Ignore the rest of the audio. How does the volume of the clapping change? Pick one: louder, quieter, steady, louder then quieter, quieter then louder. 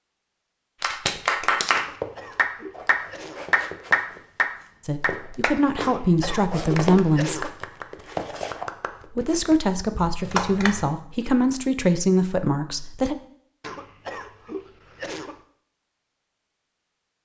quieter then louder.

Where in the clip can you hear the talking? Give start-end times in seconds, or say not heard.
4.8-7.5, 9.1-13.2.